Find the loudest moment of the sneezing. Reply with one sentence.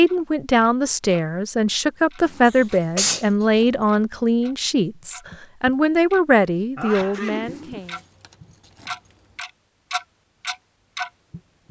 The loudest moment of the sneezing is at 3 seconds.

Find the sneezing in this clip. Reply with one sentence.
You can hear the sneezing from 2.5 to 3.2 s and from 6.8 to 7.8 s.